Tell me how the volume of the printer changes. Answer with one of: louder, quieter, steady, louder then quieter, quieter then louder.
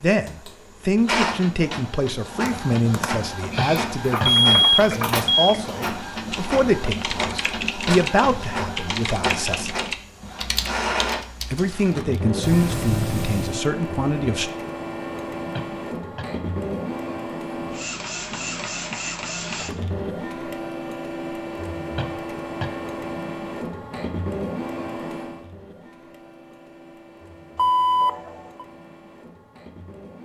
quieter.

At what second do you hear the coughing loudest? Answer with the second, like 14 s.
4 s.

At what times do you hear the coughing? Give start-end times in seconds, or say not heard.
3.5-4.4, 15.6-16.3, 21.9-22.8.